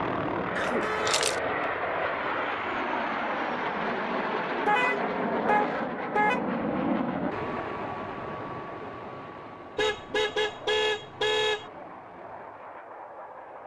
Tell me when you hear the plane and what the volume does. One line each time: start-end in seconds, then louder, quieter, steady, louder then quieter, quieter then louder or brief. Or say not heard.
0.0-13.6 quieter.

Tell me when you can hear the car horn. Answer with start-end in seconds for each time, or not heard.
0.8-1.2, 4.7-6.4, 9.8-11.7.